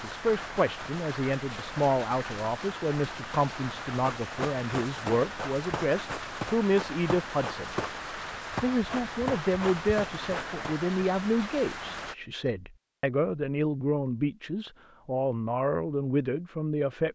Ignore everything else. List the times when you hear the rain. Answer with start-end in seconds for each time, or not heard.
0.0-12.2.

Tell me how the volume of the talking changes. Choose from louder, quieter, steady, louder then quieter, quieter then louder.
steady.